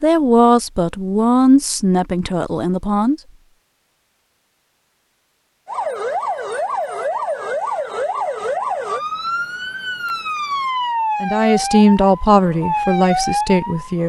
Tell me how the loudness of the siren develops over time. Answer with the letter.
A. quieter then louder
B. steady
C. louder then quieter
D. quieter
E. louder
B.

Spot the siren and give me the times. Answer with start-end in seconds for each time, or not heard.
5.7-14.0.